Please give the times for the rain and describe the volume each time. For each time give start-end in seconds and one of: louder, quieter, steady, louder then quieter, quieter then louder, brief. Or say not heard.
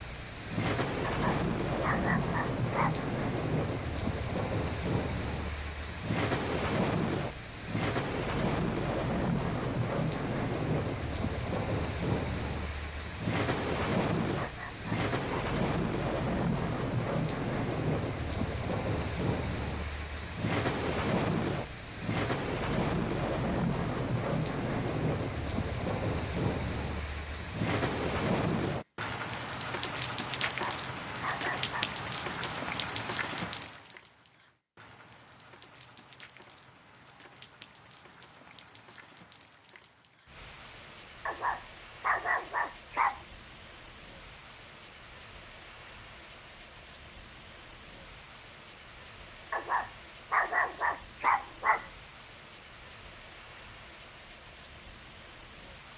0.0-55.9 quieter.